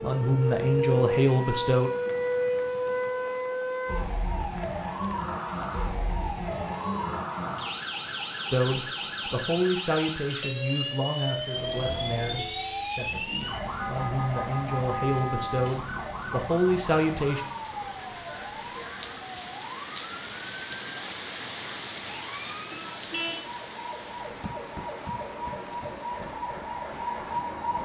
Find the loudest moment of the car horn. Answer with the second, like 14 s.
23 s.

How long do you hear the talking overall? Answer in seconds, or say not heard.
11 s.